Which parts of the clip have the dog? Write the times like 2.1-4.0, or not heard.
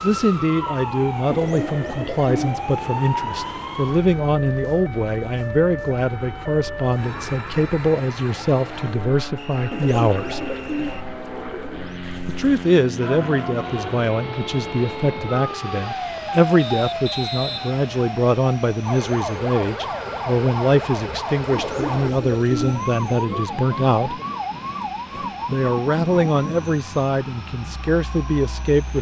not heard.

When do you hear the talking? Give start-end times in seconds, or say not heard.
0.0-10.4, 12.2-24.2, 25.4-28.9.